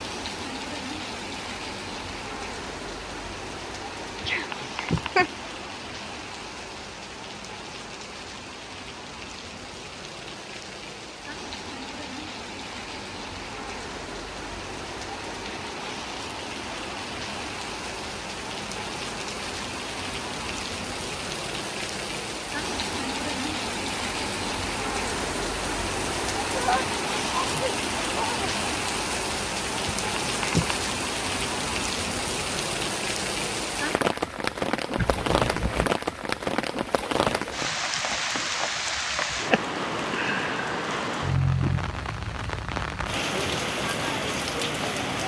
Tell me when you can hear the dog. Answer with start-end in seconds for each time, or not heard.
not heard.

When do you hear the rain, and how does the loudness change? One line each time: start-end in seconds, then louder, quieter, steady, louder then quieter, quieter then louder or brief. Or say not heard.
0.0-45.2 louder.